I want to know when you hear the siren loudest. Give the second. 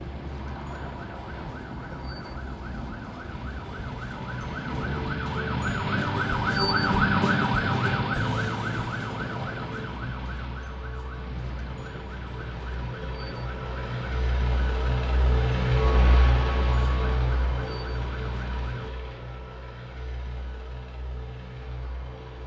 7 s.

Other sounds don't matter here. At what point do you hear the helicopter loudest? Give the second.
16 s.